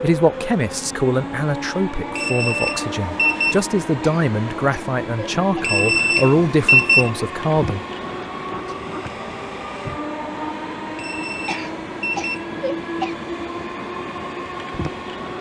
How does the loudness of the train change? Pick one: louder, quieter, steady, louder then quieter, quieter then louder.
steady.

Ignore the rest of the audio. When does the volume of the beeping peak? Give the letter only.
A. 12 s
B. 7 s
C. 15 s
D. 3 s
B.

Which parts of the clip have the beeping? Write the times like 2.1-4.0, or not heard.
2.1-3.6, 5.6-7.1, 10.9-12.4.